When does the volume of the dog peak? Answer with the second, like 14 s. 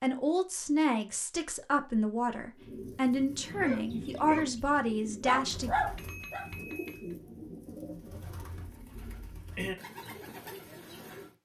6 s.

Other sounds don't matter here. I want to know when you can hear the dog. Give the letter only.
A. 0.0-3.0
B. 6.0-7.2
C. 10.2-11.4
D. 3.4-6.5
D.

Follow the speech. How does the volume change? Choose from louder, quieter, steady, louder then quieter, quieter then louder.
steady.